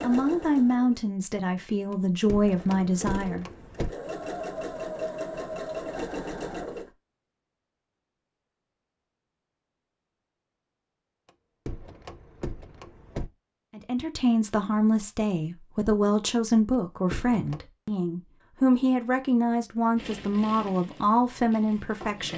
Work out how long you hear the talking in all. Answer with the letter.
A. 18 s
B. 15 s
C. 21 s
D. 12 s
D.